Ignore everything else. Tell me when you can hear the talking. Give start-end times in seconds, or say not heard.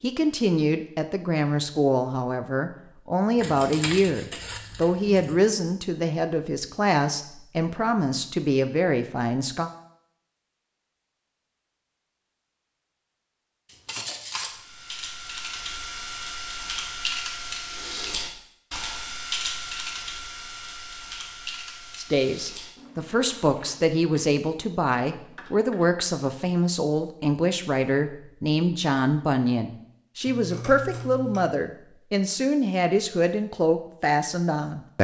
0.0-9.7, 21.9-34.9.